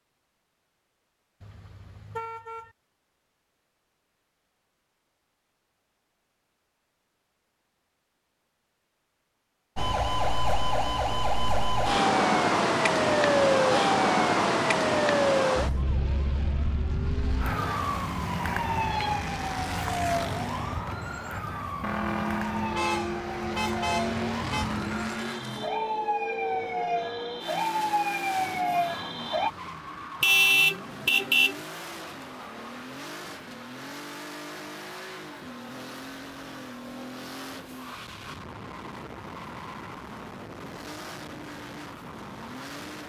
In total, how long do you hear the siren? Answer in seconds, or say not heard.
20 s.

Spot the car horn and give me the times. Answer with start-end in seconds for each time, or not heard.
1.4-2.7, 22.8-24.6, 30.2-31.6.